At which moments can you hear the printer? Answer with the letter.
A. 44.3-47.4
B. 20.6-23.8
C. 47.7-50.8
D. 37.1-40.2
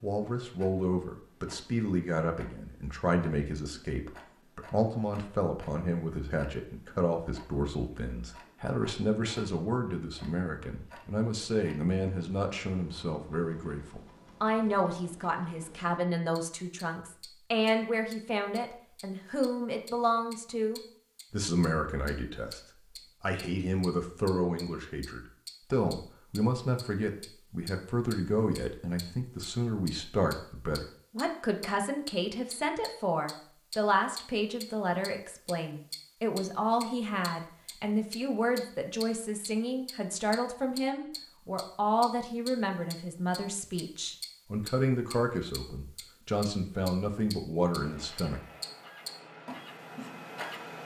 C.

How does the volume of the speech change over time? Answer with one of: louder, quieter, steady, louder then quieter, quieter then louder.
steady.